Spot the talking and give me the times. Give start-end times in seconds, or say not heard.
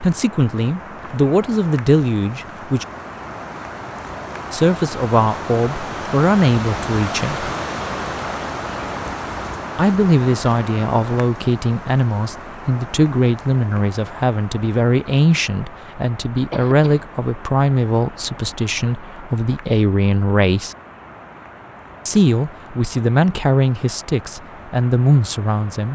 0.0-2.9, 4.5-7.5, 9.8-20.8, 22.1-25.9.